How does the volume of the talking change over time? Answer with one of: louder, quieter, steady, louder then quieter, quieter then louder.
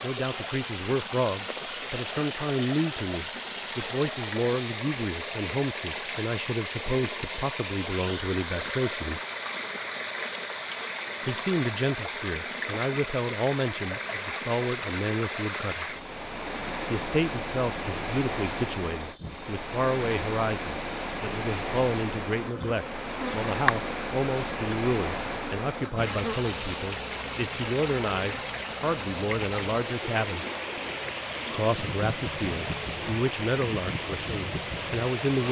steady.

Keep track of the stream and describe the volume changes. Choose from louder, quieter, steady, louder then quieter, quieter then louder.
steady.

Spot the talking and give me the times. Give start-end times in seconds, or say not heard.
0.0-9.2, 11.2-15.9, 16.9-30.4, 31.5-35.4.